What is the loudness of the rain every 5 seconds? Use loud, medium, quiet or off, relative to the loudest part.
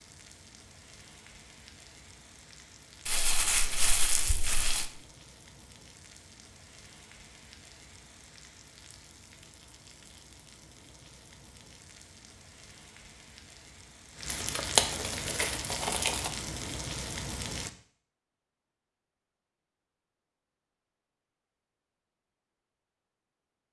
quiet, quiet, medium, loud, off.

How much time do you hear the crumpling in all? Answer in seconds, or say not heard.
4 s.